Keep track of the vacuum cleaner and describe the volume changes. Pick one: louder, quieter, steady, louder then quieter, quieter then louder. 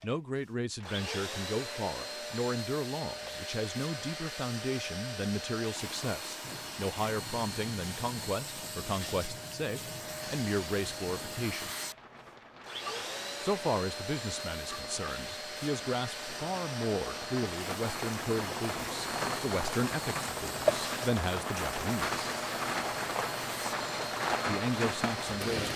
steady.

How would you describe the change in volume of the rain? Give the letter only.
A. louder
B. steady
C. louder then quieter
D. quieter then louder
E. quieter
A.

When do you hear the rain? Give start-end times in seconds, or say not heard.
6.4-25.7.